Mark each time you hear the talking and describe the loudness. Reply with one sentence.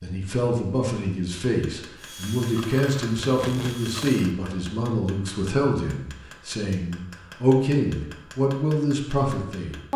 You can hear the talking from 0.0 to 9.9 s, at a steady volume.